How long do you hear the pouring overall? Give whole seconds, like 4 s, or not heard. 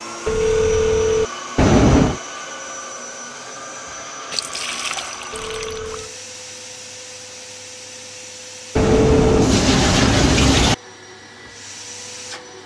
4 s.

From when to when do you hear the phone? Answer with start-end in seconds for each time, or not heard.
0.2-1.2, 5.3-6.2, 8.8-9.5.